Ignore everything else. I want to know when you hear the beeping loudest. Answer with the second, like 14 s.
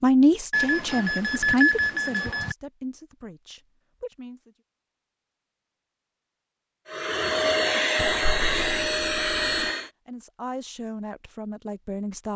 2 s.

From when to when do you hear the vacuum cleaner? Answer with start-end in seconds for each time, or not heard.
6.8-9.9.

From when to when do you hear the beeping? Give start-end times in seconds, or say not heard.
0.5-2.5, 8.0-9.7.